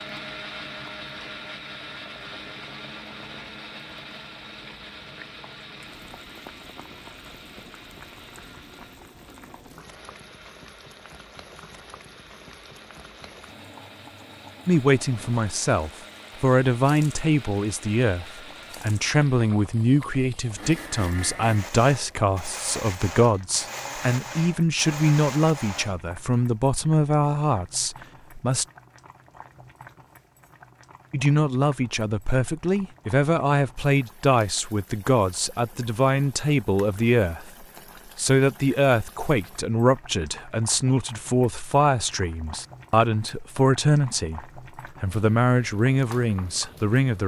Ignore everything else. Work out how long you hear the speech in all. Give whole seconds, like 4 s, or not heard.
30 s.